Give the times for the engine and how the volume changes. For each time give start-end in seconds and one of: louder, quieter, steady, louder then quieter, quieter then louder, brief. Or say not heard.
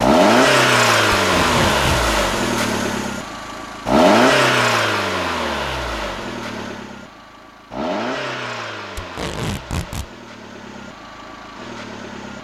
0.0-12.3 quieter.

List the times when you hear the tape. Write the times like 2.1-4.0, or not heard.
1.1-2.1, 8.9-10.1.